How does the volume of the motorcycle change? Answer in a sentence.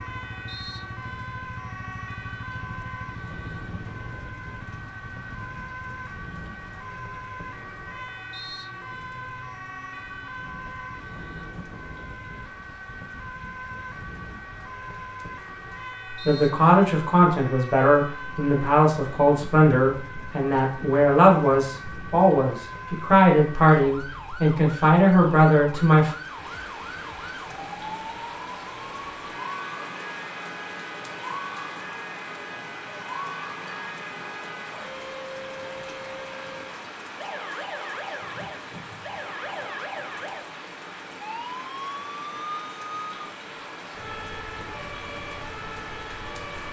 The volume of the motorcycle goes down.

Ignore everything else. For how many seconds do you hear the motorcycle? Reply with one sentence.
The motorcycle can be heard for 11 seconds in total.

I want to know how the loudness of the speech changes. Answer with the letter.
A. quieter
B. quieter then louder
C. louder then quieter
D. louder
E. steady
E.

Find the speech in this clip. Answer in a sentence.
The speech can be heard from 16.2 to 26.1 s.